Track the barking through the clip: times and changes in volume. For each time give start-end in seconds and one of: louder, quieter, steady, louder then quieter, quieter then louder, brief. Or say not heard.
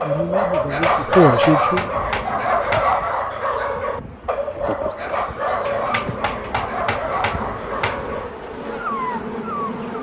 0.0-9.9 quieter.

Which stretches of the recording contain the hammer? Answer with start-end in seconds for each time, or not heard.
0.5-3.0, 5.7-8.2.